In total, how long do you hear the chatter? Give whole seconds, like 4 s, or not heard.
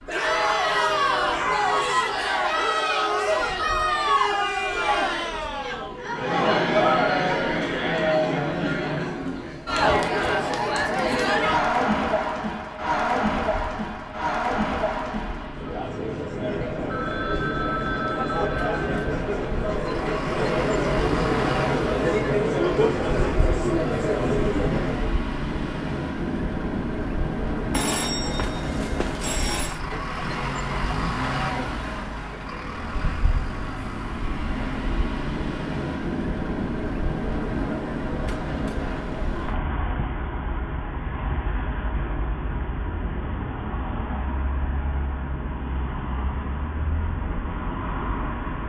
25 s.